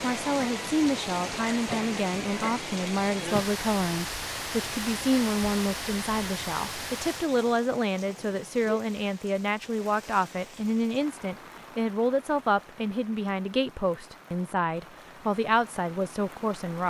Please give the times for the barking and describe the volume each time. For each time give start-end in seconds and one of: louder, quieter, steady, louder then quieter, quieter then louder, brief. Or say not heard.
not heard.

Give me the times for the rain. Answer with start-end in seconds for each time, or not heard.
0.0-16.8.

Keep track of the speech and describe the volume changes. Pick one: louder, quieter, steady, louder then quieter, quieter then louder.
steady.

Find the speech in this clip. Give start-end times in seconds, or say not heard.
0.0-16.8.